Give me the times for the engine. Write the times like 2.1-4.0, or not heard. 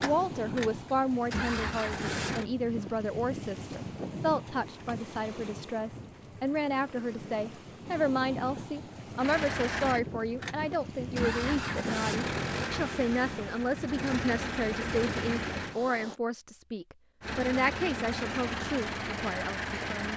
0.0-2.5, 9.2-15.8, 17.2-20.1.